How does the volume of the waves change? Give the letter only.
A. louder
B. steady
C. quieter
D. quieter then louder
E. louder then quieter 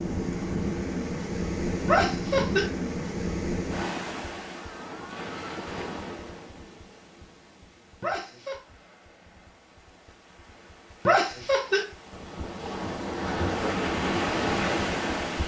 D.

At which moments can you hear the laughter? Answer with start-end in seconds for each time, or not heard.
1.9-2.7, 8.0-8.6, 11.1-11.8.